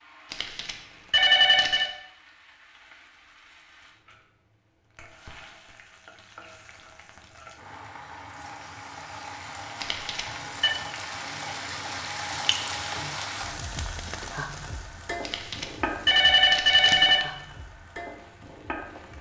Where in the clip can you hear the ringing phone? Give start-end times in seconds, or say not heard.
0.3-1.9, 9.8-10.7, 15.2-17.2.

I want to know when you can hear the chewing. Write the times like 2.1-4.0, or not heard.
not heard.